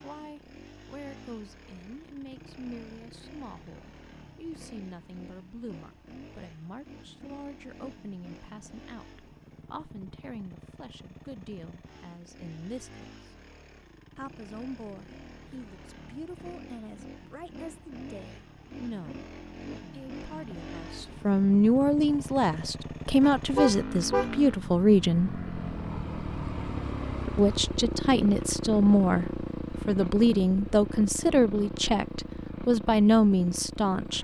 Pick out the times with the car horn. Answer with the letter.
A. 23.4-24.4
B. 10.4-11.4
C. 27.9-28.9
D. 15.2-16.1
A.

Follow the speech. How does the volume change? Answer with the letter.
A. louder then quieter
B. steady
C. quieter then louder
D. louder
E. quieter
D.